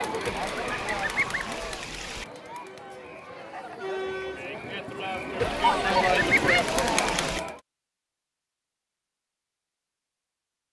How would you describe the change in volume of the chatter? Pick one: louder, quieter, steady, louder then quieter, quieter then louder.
quieter then louder.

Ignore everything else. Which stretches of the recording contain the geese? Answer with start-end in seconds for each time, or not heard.
0.2-2.2, 5.4-7.4.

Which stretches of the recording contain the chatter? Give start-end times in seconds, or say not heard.
0.0-7.6.